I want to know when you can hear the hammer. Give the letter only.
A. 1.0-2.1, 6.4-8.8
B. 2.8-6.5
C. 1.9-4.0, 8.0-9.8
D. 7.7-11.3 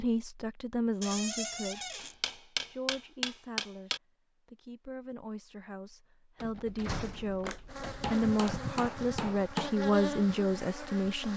C.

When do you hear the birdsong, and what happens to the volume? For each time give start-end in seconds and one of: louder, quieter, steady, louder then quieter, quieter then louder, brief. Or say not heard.
not heard.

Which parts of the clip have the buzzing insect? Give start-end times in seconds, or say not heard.
7.7-11.3.